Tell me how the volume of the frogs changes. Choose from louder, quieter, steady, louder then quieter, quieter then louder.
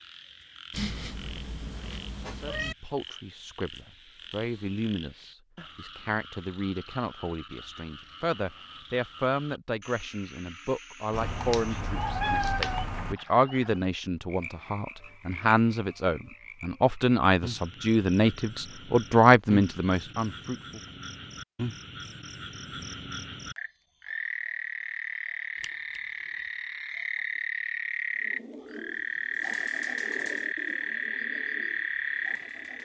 louder.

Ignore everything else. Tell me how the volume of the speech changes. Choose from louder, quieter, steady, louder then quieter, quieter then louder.
louder.